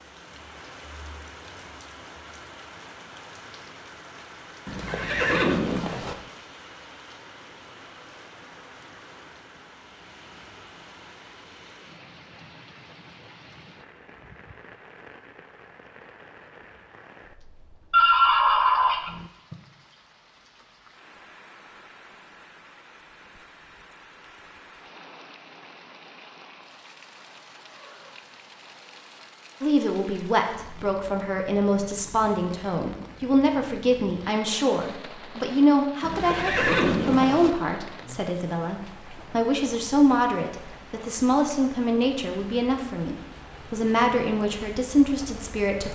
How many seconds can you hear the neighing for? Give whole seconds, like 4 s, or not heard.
5 s.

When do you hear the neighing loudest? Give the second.
18 s.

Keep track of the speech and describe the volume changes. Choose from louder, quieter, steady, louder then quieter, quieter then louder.
steady.